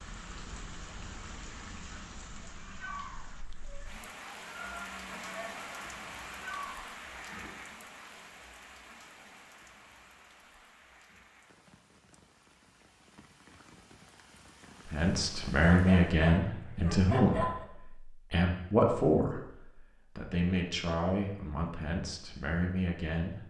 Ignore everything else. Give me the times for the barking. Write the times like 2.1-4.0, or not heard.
15.6-17.6.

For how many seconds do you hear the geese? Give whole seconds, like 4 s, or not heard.
5 s.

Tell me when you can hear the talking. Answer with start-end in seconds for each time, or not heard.
14.8-17.5, 18.3-19.4, 20.1-23.4.